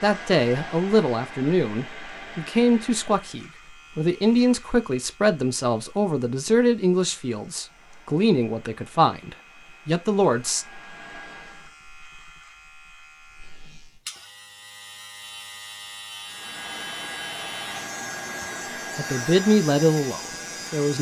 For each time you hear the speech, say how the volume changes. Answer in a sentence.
The speech can be heard from 0.0 to 10.7 s, at a steady volume; and briefly from 18.8 to 20.9 s.